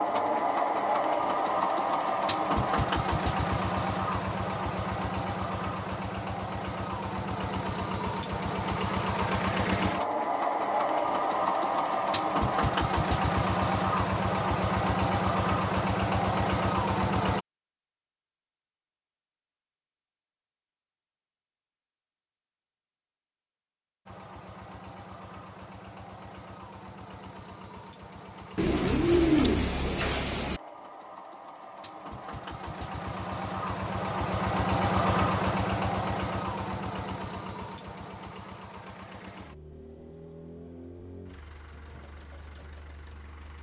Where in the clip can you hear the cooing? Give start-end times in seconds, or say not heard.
28.6-30.6.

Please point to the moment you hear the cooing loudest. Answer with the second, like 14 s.
29 s.